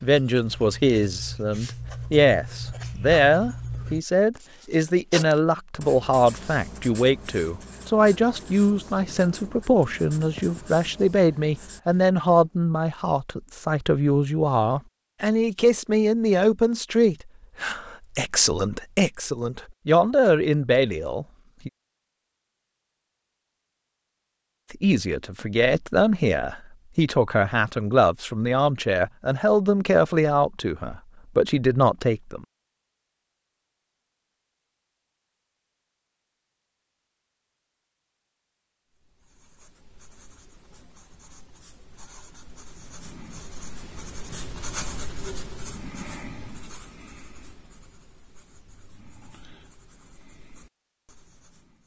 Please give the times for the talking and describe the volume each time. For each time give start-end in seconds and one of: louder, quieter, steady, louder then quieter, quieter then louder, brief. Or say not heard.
0.0-21.7 steady
24.7-32.5 steady.